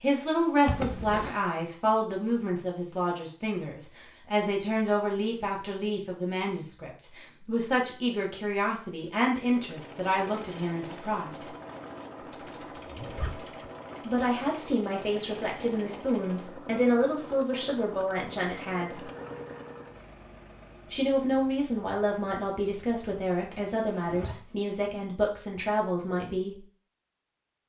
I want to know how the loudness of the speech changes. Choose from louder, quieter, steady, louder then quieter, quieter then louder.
steady.